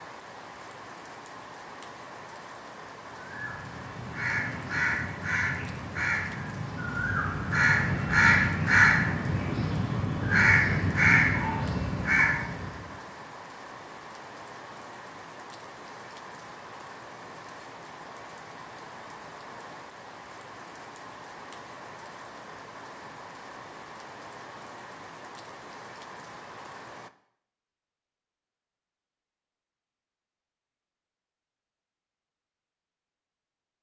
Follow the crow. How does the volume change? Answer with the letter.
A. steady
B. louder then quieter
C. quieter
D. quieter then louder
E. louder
E.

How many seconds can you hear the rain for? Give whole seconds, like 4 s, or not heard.
27 s.